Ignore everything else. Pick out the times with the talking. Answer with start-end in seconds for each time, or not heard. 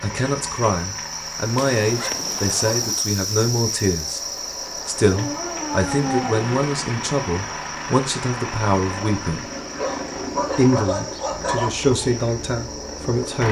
0.0-4.2, 4.8-9.4, 10.6-13.4.